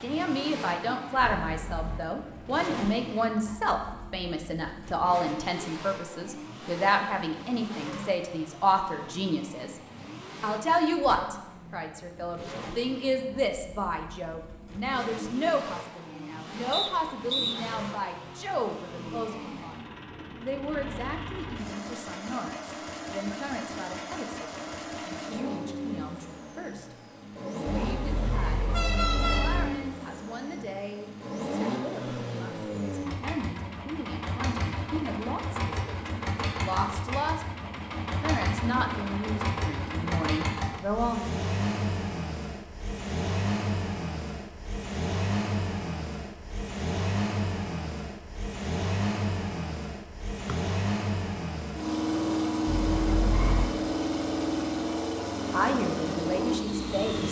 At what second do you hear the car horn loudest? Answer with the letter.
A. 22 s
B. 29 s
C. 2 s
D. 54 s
B.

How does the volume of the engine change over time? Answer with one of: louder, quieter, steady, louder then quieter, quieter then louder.
louder.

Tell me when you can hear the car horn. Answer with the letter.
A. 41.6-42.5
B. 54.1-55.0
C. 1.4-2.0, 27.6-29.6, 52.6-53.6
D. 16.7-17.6
C.